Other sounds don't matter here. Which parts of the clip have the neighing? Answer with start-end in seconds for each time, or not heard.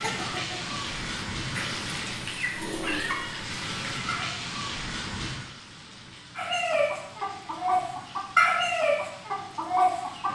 not heard.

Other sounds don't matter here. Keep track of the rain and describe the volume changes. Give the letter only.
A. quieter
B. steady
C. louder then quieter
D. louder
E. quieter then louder
A.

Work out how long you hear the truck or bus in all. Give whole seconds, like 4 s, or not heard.
not heard.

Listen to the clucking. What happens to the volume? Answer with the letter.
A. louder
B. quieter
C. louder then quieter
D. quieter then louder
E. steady
A.